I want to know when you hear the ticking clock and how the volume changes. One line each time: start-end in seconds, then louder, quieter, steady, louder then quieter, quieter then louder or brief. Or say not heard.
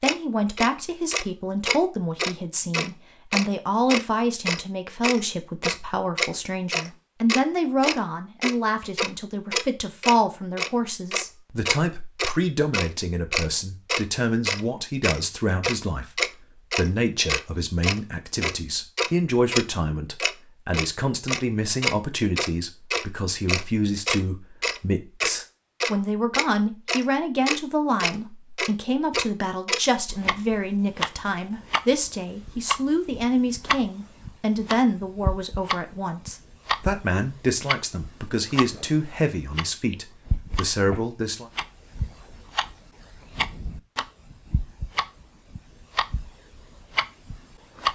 0.0-47.9 quieter.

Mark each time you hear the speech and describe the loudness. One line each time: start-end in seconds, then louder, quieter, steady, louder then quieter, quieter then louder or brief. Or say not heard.
0.0-41.5 steady.